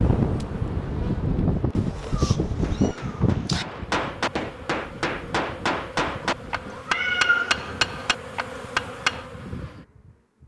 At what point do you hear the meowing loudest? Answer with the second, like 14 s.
7 s.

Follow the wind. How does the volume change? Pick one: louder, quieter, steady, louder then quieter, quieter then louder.
quieter.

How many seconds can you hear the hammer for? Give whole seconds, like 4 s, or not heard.
7 s.